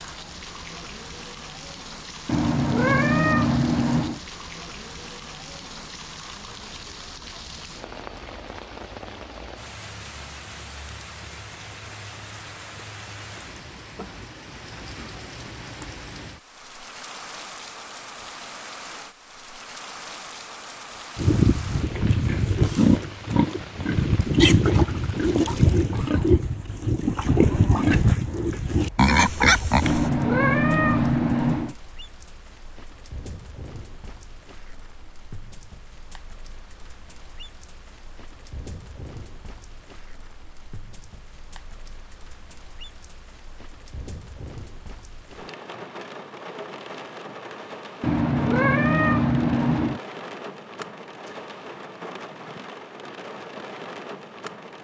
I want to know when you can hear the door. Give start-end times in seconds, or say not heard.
not heard.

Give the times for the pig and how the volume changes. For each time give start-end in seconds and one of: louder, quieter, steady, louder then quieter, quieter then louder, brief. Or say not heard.
21.1-30.1 steady.